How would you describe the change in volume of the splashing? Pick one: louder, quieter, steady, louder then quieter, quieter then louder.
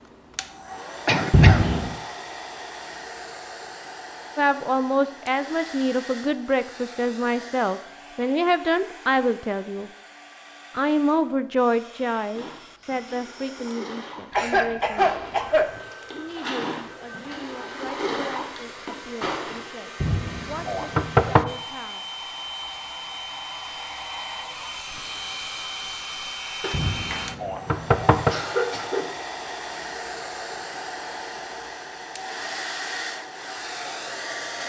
louder.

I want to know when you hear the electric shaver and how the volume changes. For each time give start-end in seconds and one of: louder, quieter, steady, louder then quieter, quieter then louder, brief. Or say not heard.
not heard.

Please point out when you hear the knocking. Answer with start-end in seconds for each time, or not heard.
1.3-1.9, 20.0-21.4, 26.7-28.4.